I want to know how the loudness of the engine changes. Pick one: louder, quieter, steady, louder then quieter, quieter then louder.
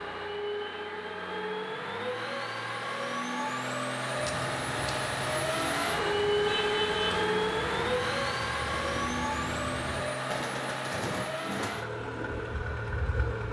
louder then quieter.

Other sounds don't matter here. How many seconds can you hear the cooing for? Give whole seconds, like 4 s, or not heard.
9 s.